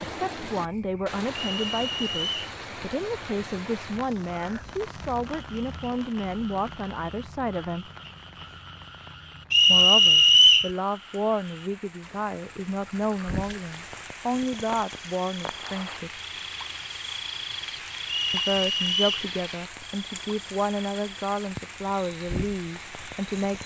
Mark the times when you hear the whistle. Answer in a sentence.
The whistle can be heard from 1.4 to 2.5 s, from 9.5 to 10.7 s and from 18.1 to 19.2 s.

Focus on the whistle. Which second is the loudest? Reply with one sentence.
The volume of the whistle peaks at 10 seconds.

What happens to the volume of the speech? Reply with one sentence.
The loudness of the speech stays about the same.